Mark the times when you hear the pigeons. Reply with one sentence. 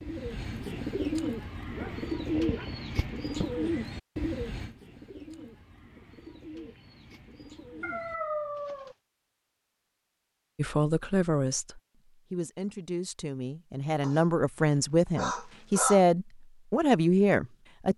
The pigeons can be heard from 0.0 to 8.9 s.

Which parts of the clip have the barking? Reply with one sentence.
You can hear the barking from 1.7 to 3.5 s, from 7.8 to 8.9 s and from 14.0 to 16.1 s.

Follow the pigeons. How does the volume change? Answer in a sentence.
The volume of the pigeons goes down.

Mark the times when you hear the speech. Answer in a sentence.
You can hear the speech from 10.6 to 17.9 s.